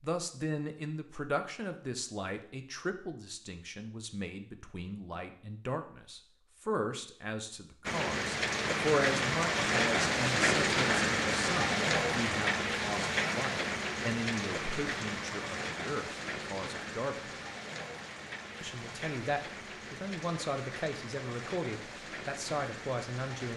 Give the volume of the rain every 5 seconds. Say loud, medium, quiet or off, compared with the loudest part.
off, loud, loud, medium, quiet.